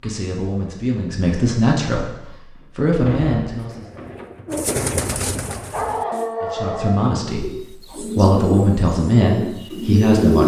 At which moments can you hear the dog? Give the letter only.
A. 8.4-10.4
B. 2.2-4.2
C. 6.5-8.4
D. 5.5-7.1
D.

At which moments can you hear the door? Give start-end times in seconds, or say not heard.
2.2-4.2.